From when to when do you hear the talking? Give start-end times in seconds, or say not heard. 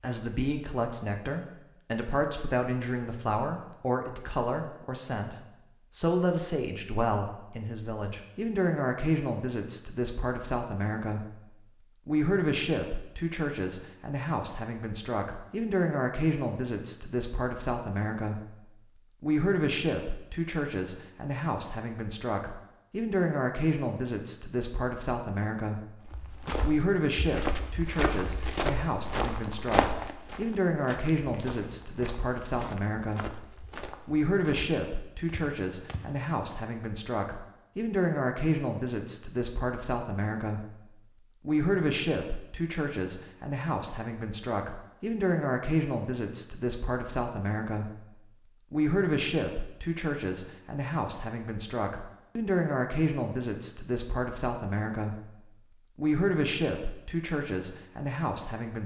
0.0-18.6, 19.2-26.0, 26.6-33.5, 34.0-55.4, 56.0-58.8.